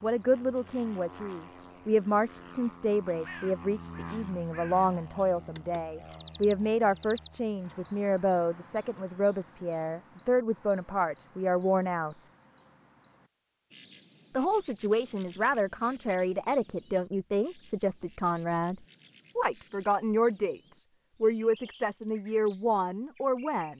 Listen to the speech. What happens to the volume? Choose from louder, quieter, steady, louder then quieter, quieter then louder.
steady.